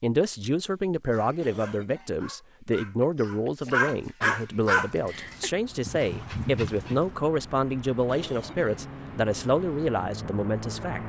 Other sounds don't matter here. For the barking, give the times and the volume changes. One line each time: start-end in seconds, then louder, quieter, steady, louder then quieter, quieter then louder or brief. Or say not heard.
1.1-7.2 louder then quieter.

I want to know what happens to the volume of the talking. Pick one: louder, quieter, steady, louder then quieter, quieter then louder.
steady.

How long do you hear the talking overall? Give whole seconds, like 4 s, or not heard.
11 s.